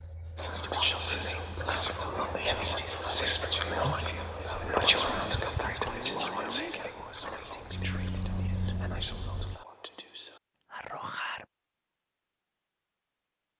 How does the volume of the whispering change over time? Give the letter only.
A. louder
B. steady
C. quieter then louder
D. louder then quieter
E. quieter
E.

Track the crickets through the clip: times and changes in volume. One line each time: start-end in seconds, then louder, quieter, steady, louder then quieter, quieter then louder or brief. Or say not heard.
0.0-9.6 louder.